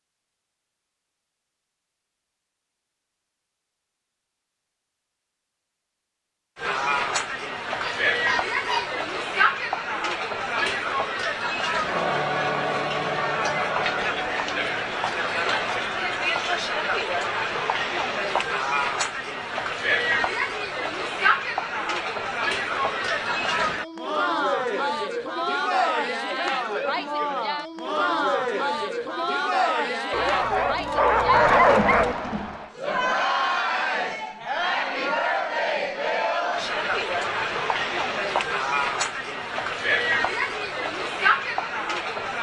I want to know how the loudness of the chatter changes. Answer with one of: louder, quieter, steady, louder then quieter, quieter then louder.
steady.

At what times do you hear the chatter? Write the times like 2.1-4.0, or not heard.
6.5-42.3.